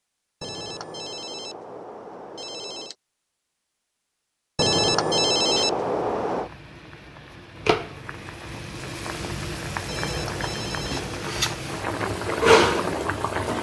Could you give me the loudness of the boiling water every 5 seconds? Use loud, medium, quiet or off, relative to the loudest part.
off, medium, loud.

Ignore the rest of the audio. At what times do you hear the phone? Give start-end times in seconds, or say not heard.
0.4-3.0, 4.5-6.5, 9.8-11.2.